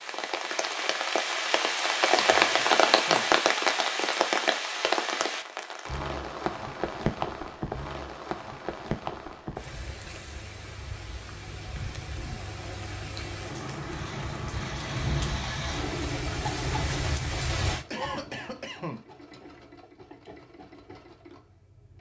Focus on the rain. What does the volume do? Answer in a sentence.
The loudness of the rain goes down, then up.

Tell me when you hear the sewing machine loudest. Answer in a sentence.
The loudest moment of the sewing machine is at 16 seconds.